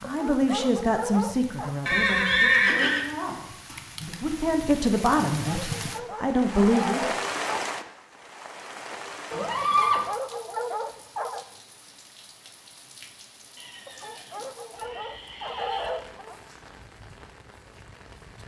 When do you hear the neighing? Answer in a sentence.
You can hear the neighing from 1.9 to 3.0 s, from 9.3 to 10.1 s and from 13.6 to 15.9 s.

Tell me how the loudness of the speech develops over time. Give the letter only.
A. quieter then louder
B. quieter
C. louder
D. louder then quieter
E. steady
A.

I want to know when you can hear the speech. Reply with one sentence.
You can hear the speech from 0.0 to 7.1 s.